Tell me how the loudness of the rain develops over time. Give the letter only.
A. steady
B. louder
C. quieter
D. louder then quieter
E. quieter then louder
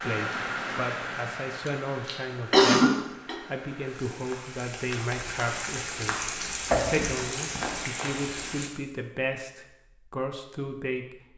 E.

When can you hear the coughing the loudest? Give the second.
3 s.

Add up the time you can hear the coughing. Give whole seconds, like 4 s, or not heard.
2 s.